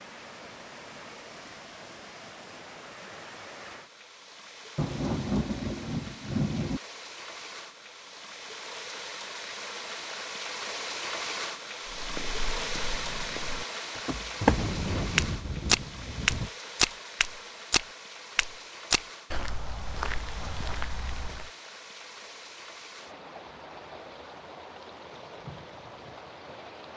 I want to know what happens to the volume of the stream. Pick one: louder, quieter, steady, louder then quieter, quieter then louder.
louder then quieter.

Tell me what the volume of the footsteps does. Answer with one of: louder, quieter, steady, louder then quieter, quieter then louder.
louder then quieter.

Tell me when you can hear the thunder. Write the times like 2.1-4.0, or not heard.
4.8-6.8, 13.9-16.5.